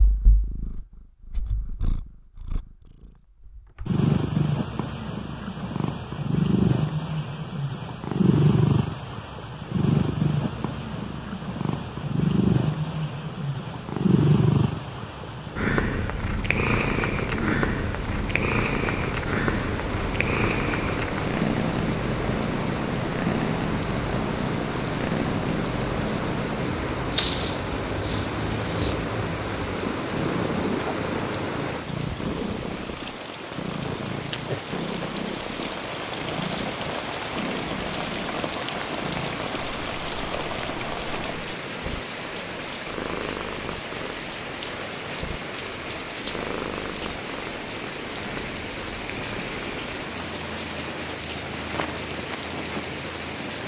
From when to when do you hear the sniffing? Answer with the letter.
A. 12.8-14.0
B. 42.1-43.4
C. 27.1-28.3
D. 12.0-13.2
C.